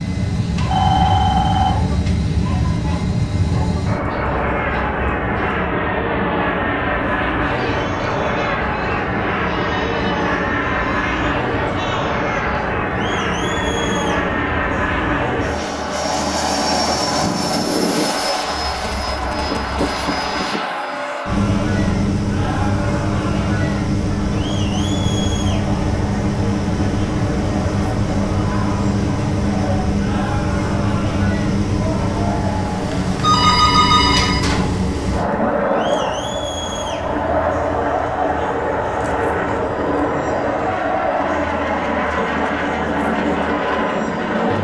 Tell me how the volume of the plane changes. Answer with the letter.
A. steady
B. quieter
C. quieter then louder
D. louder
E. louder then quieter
A.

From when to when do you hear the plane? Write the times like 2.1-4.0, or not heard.
0.0-44.5.